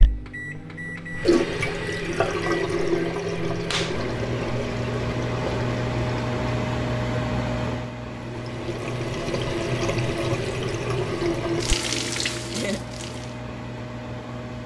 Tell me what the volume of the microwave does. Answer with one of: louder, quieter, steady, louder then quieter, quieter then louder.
louder then quieter.